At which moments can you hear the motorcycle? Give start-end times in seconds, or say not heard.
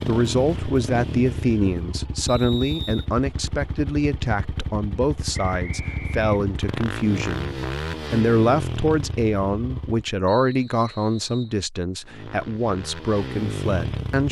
0.0-10.1, 12.0-14.2.